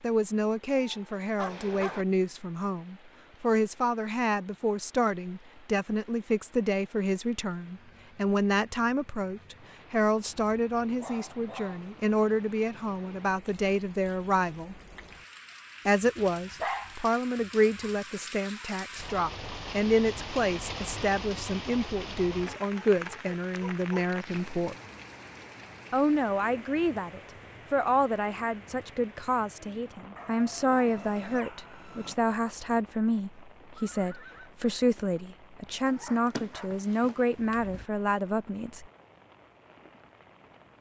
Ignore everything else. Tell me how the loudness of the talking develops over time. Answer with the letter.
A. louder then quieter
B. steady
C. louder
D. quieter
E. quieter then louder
B.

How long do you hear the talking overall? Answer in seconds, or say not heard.
37 s.